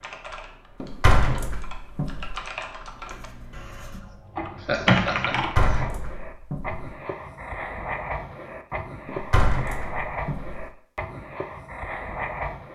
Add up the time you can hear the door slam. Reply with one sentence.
You can hear the door slam for 5 seconds altogether.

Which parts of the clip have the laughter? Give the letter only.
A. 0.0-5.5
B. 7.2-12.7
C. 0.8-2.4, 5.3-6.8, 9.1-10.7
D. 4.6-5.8
D.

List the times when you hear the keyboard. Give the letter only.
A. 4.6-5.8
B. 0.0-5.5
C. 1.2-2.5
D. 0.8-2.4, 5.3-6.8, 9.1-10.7
B.